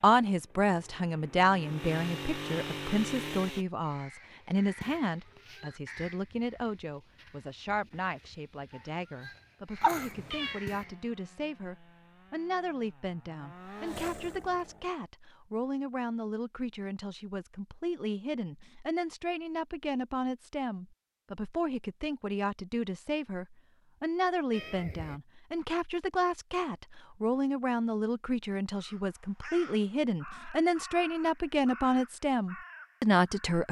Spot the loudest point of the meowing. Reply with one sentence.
The volume of the meowing peaks at 10 seconds.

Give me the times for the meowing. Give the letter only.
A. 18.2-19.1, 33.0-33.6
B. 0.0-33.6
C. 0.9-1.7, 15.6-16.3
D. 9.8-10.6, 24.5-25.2
D.